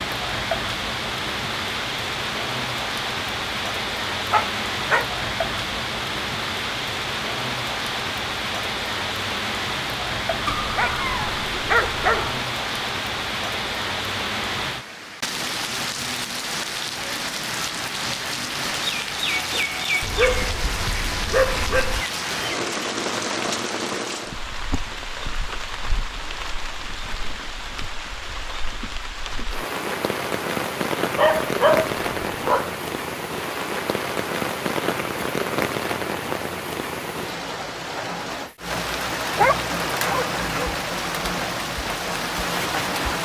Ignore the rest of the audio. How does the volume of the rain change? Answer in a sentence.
The volume of the rain stays about the same.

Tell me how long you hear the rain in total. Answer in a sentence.
The rain can be heard for 43 seconds in total.